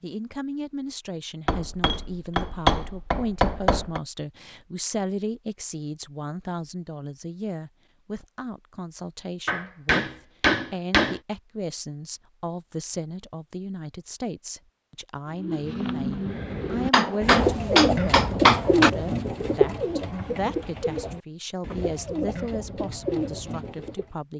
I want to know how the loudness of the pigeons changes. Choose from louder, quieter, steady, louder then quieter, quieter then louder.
louder then quieter.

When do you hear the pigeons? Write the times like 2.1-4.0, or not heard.
15.2-24.1.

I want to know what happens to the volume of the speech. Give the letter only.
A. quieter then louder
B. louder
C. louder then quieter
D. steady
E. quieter
D.